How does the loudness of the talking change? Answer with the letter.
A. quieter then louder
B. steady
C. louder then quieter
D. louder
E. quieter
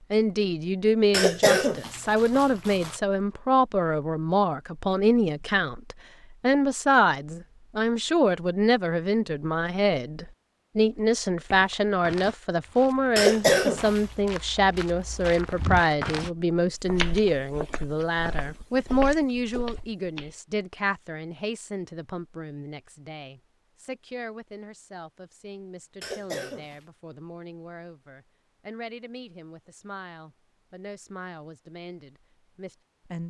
E.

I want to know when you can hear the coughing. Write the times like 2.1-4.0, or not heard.
1.1-3.0, 13.2-14.1, 26.0-26.8.